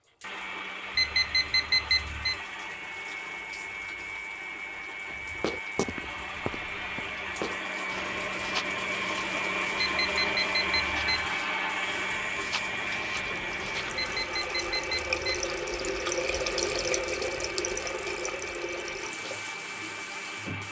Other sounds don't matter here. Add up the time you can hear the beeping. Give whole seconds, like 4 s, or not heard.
4 s.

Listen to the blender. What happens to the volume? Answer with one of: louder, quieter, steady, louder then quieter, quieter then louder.
louder then quieter.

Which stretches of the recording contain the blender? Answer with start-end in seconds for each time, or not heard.
0.2-20.6.